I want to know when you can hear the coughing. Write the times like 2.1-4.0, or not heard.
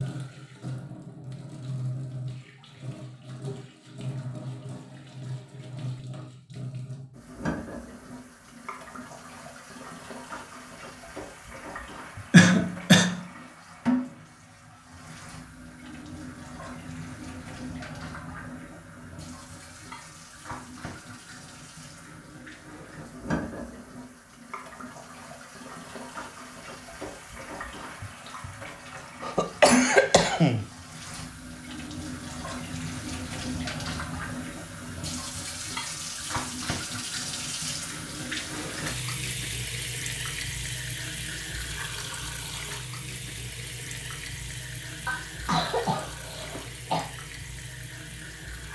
12.3-13.2, 29.2-30.6, 45.0-47.0.